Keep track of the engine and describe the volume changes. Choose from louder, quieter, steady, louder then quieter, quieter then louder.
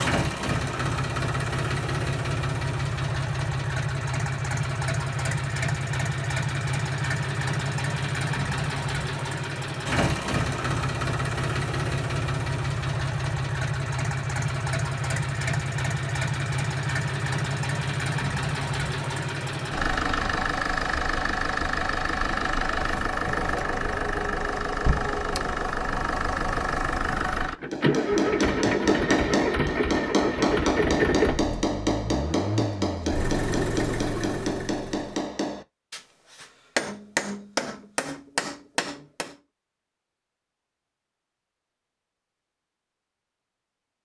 steady.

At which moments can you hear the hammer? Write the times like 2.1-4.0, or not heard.
27.7-39.4.